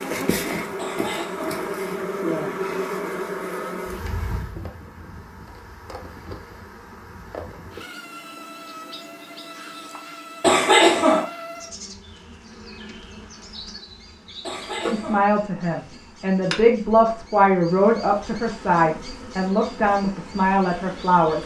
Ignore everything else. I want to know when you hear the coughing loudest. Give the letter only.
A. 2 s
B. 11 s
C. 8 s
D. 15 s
B.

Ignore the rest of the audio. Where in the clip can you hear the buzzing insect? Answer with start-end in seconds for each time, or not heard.
0.0-21.4.